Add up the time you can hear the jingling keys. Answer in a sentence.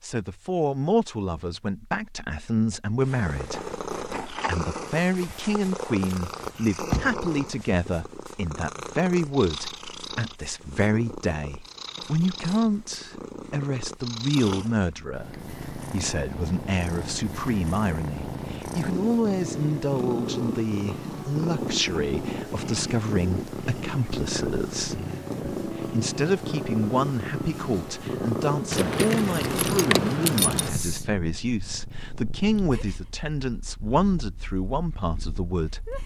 The jingling keys can be heard for 4 seconds in total.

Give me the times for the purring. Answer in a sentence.
You can hear the purring from 3.0 to 36.0 s.